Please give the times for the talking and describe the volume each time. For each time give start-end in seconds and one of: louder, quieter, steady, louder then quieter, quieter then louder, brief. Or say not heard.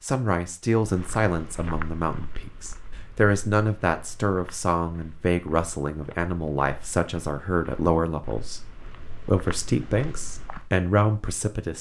0.0-11.7 steady.